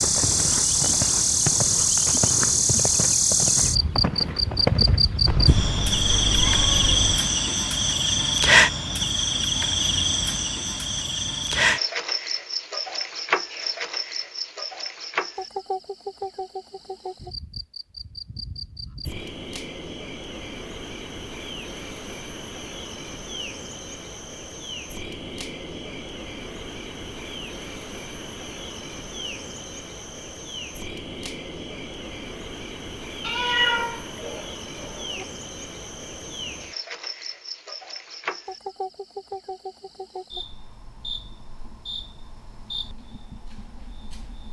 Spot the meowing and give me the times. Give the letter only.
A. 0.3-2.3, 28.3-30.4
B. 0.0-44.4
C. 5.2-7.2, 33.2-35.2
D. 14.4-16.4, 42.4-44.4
C.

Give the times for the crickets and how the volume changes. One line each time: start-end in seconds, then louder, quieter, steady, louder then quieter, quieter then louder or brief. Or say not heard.
0.0-44.4 quieter.